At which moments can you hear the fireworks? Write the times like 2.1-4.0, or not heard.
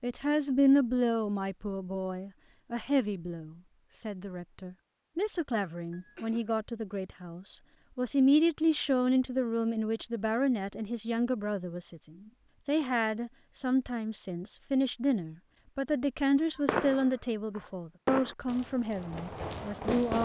16.6-20.1.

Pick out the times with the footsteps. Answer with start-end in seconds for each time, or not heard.
not heard.